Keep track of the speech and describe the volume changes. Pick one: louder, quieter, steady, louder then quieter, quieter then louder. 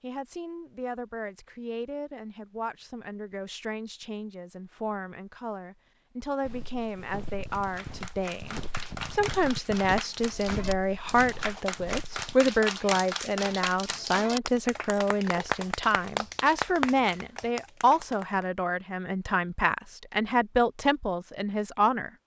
louder.